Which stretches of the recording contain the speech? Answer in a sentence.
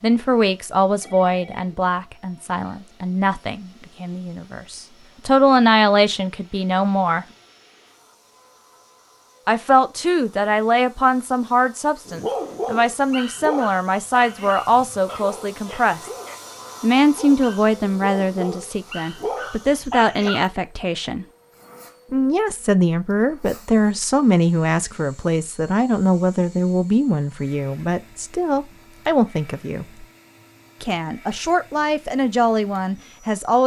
You can hear the speech from 0.0 to 7.2 s, from 9.4 to 16.1 s, from 16.8 to 21.2 s, from 22.1 to 30.1 s and from 30.8 to 33.6 s.